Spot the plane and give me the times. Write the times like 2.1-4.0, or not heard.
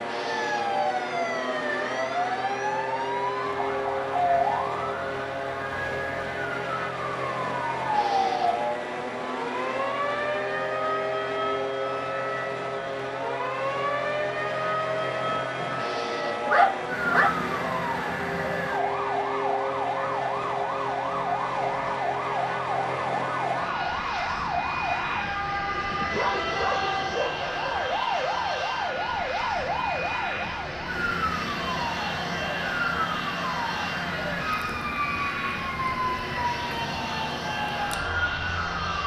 0.0-39.0.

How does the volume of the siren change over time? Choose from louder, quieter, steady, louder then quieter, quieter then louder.
steady.